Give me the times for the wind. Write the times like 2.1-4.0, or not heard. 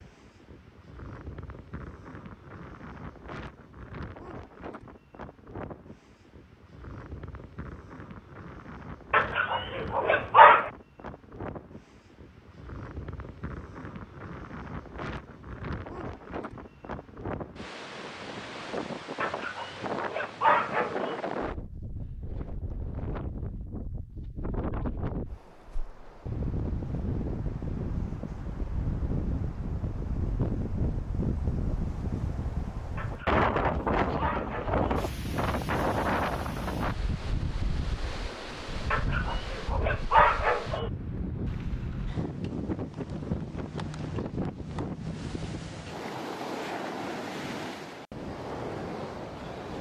0.0-49.7.